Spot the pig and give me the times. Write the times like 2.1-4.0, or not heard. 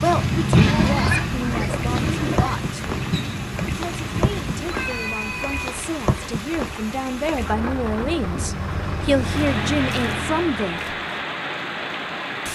0.6-2.5.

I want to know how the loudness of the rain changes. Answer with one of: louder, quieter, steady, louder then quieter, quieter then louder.
steady.